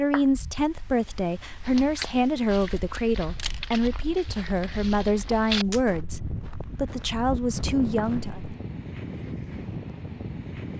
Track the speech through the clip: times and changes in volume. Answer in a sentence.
You can hear the speech from 0.0 to 8.4 s, at a steady volume.